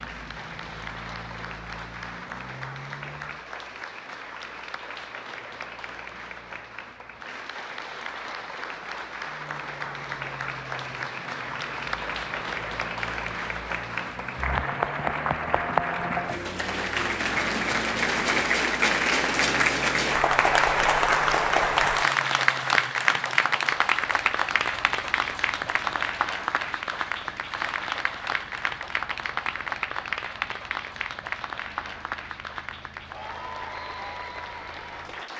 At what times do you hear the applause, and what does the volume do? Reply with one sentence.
The applause can be heard from 0.0 to 35.3 s, getting louder then quieter.